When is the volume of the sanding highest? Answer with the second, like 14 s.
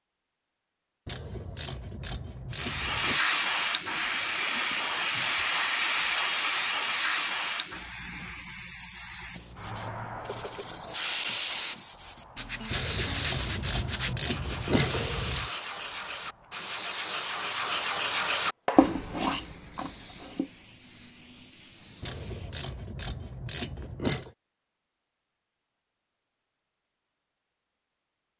19 s.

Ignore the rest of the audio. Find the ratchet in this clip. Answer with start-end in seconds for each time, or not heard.
1.1-3.2, 12.7-15.6, 22.0-24.3.